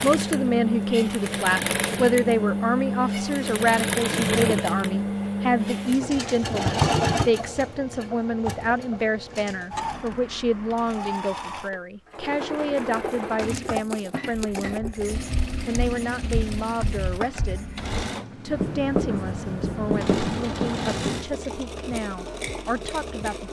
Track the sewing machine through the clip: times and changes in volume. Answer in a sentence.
You can hear the sewing machine from 0.0 to 23.4 s, getting quieter.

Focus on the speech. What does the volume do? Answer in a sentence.
The loudness of the speech goes down.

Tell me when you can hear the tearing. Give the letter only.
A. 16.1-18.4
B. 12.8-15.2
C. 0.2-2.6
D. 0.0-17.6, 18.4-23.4
B.